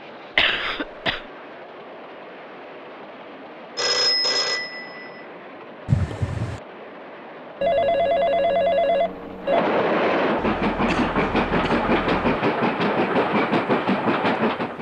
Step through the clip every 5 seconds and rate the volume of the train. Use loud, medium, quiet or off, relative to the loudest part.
quiet, medium, loud.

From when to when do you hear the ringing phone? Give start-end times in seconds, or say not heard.
3.8-5.2, 7.6-9.6.